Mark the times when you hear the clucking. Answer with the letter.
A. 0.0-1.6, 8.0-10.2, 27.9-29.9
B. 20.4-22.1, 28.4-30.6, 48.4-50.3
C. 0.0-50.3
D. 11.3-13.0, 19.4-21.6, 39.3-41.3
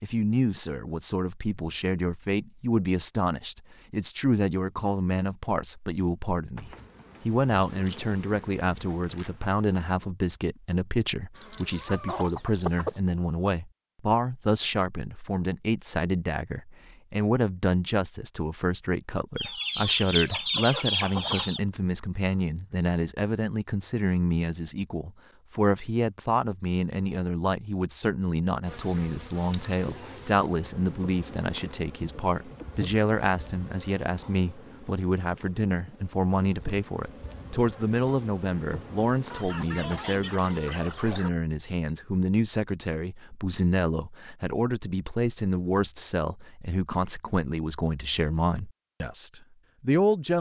D.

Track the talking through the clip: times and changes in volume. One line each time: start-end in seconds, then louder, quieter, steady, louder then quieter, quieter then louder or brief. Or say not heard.
0.0-50.3 steady.